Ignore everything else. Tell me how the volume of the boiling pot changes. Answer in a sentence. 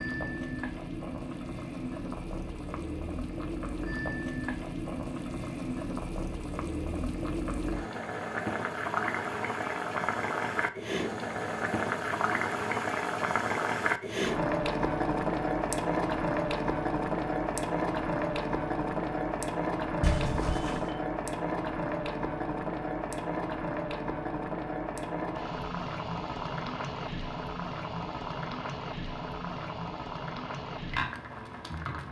The loudness of the boiling pot goes up, then down.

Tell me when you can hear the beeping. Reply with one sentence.
The beeping can be heard from 20.0 to 20.9 s.